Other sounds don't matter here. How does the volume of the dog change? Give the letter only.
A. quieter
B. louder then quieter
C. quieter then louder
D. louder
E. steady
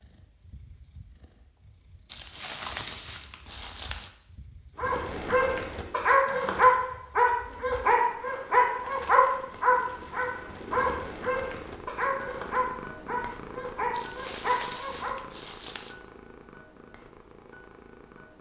A.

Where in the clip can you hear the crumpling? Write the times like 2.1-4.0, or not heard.
2.0-4.1, 13.9-15.9.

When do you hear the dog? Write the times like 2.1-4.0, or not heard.
4.8-15.2.